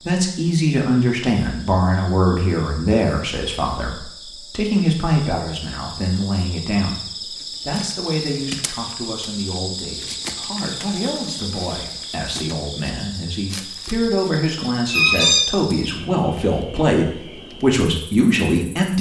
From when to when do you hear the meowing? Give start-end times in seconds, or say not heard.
14.9-15.5.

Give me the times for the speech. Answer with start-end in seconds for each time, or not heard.
0.1-18.9.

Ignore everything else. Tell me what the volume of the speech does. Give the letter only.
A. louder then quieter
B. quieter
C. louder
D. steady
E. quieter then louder
E.